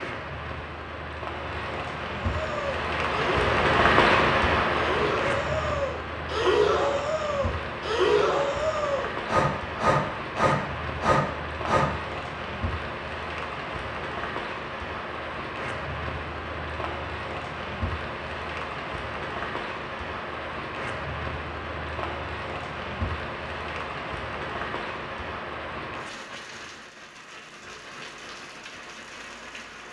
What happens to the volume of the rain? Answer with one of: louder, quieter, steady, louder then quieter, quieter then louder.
quieter.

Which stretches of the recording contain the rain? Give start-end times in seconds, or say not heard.
0.0-29.8.